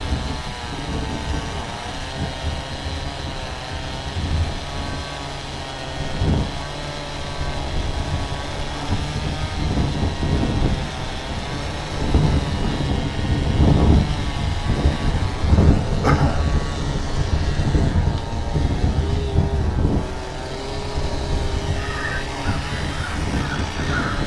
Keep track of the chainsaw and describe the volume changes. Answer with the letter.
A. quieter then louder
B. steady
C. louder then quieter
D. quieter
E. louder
B.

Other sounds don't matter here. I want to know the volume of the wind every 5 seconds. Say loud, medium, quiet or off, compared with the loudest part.
medium, medium, loud, loud, medium.